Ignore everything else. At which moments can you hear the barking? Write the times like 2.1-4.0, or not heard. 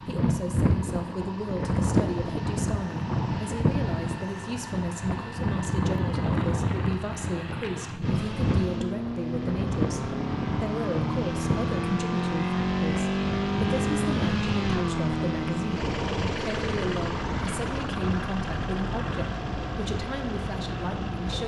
not heard.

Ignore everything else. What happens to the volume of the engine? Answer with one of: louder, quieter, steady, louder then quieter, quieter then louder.
louder then quieter.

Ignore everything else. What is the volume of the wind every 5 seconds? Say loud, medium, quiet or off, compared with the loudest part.
loud, loud, loud, medium, medium.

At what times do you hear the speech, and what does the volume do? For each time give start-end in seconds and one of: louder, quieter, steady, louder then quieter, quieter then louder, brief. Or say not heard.
0.0-21.4 steady.